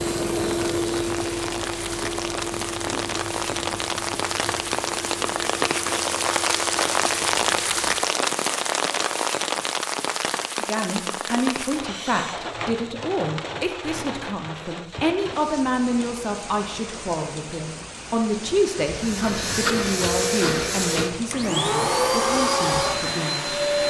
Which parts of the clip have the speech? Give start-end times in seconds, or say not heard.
10.6-23.6.